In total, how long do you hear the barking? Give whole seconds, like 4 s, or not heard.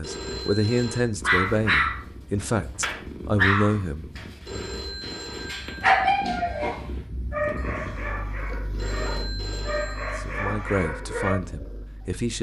10 s.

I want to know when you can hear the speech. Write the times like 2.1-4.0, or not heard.
0.0-4.6, 10.2-12.3.